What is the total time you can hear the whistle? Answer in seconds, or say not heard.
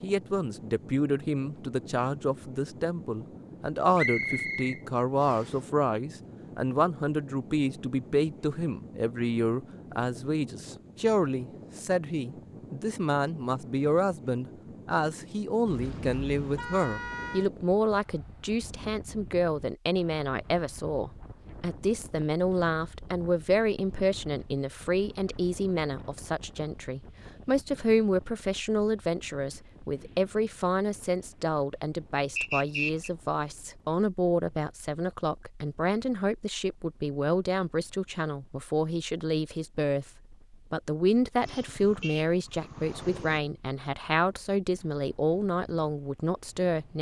2 s.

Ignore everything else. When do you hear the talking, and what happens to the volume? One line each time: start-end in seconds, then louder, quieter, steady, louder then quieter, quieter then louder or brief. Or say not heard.
0.0-46.9 steady.